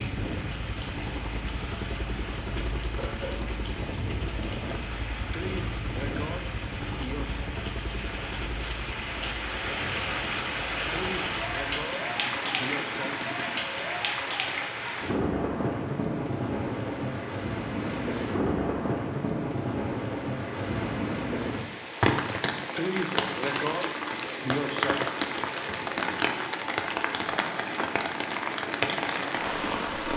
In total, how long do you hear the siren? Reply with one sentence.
The siren can't be heard in this clip.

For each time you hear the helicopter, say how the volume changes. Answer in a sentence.
The helicopter can be heard from 0.0 to 13.6 s, getting quieter.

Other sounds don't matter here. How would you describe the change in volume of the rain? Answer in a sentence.
The loudness of the rain goes up.